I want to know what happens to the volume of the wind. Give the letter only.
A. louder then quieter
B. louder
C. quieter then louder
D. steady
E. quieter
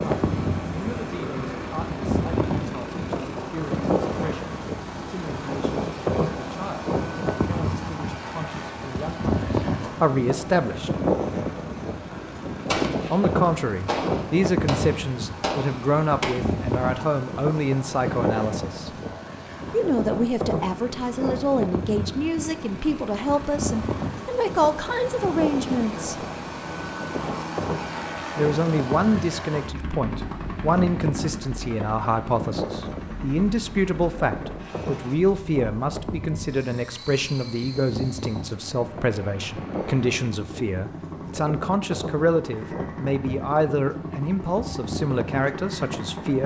E.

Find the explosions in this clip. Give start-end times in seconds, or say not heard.
12.7-16.4.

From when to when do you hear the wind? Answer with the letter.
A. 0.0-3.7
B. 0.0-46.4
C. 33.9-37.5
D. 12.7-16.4
B.